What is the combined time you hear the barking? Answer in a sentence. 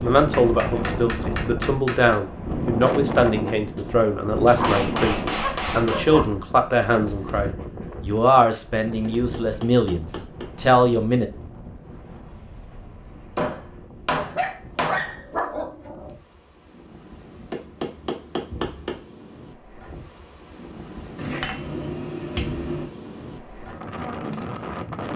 You can hear the barking for 4 seconds altogether.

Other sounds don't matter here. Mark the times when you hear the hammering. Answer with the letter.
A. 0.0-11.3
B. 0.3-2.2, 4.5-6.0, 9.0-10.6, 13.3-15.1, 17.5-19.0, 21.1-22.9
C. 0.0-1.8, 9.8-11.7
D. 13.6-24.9
B.